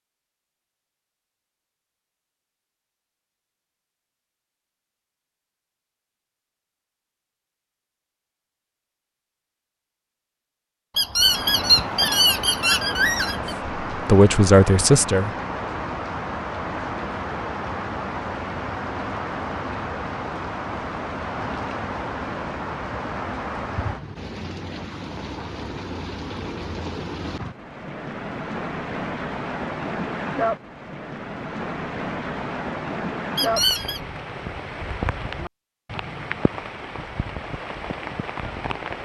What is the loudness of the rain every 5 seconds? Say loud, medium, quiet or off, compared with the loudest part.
off, off, loud, loud, loud, loud, loud, loud.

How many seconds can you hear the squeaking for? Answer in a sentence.
You can hear the squeaking for 3 seconds altogether.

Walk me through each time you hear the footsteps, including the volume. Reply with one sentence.
You can't hear the footsteps here.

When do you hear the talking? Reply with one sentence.
The talking can be heard from 13.9 to 15.3 s.